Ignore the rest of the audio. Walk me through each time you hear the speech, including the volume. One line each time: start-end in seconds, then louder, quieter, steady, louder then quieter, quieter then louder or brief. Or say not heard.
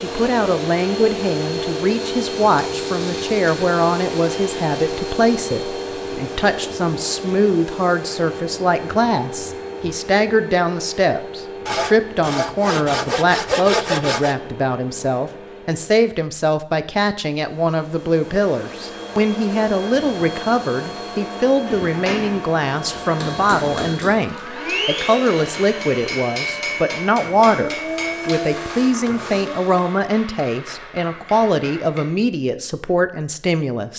0.0-33.9 steady.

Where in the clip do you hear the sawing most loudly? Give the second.
14 s.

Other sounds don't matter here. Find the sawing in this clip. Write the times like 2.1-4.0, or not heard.
11.7-14.3.